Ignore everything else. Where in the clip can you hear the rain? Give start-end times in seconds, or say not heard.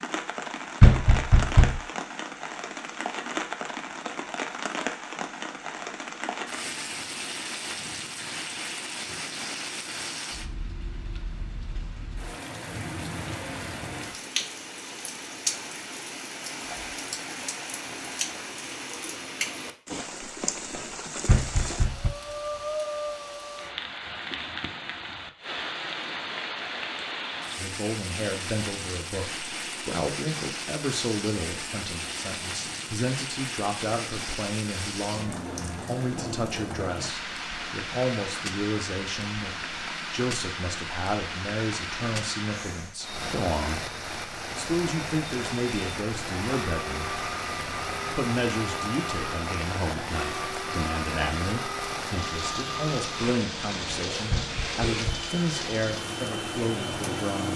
0.0-57.5.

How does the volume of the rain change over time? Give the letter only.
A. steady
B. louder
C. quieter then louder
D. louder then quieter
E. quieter
A.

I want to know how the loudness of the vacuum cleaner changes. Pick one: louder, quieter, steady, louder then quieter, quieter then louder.
steady.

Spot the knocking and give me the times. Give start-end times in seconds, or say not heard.
0.8-1.8, 21.2-22.1, 54.3-55.3.